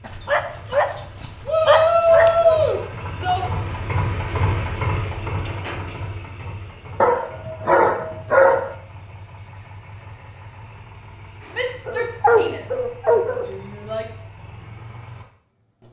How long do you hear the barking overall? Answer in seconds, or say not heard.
6 s.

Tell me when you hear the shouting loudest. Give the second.
2 s.